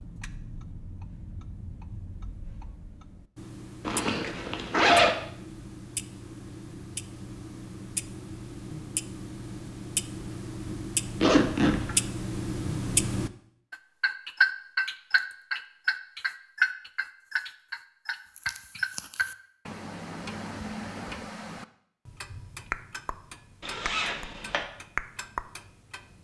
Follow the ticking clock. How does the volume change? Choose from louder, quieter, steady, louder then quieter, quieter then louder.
louder then quieter.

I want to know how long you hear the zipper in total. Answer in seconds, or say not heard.
3 s.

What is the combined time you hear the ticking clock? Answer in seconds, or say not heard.
26 s.